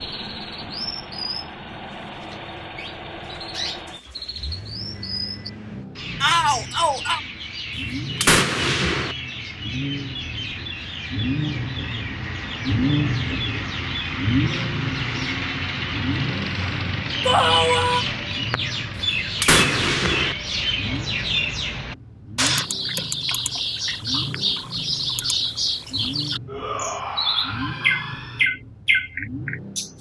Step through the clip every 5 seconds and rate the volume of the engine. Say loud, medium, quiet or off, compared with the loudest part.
medium, medium, loud, medium, medium, medium.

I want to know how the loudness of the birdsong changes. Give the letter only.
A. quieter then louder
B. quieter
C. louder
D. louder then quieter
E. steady
C.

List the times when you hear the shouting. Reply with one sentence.
The shouting can be heard from 6.2 to 7.2 s, from 17.2 to 18.1 s and from 26.4 to 28.4 s.